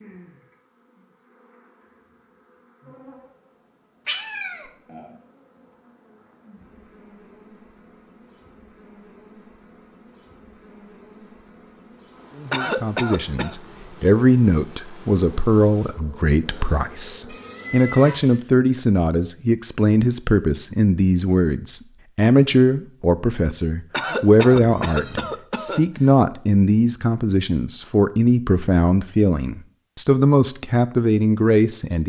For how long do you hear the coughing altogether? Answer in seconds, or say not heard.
3 s.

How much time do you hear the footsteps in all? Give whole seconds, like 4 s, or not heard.
not heard.